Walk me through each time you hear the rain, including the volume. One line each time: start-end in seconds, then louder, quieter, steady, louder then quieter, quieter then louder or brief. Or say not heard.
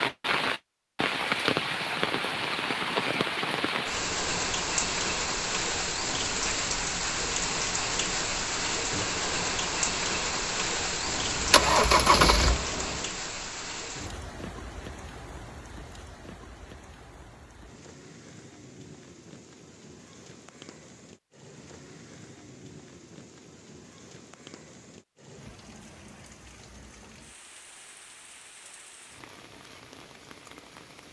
0.0-31.0 quieter.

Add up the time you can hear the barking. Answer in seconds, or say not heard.
not heard.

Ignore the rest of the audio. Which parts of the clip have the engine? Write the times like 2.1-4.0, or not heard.
11.1-13.1.